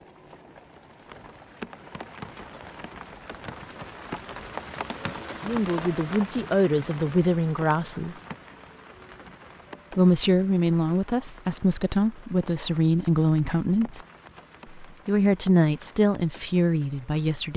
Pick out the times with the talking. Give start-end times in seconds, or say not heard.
5.5-8.2, 9.9-14.0, 14.7-17.5.